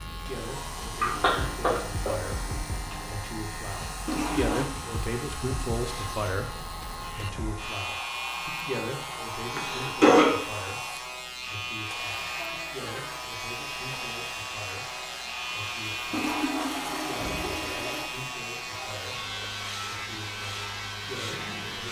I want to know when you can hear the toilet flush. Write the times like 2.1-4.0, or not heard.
4.0-4.7, 16.1-18.1.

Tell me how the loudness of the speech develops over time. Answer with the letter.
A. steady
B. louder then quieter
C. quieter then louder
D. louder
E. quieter
B.